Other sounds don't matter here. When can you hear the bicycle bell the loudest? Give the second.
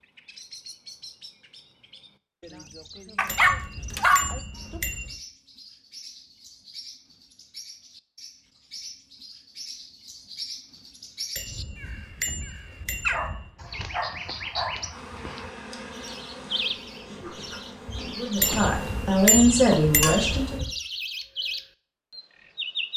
19 s.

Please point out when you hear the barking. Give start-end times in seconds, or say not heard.
3.1-4.8, 13.1-14.8.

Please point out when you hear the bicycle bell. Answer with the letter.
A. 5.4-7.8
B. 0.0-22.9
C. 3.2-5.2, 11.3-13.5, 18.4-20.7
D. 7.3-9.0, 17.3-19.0
C.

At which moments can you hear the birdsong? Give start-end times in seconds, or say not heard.
0.0-22.9.